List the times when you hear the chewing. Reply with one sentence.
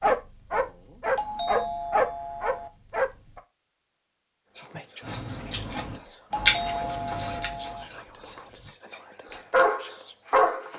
The chewing can be heard from 5.0 to 8.8 s.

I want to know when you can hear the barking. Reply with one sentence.
You can hear the barking from 0.0 to 3.4 s and from 9.5 to 10.7 s.